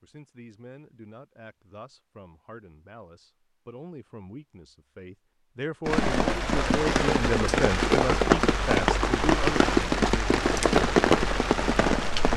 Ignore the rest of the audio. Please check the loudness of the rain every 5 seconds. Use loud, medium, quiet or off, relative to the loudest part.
off, loud, loud.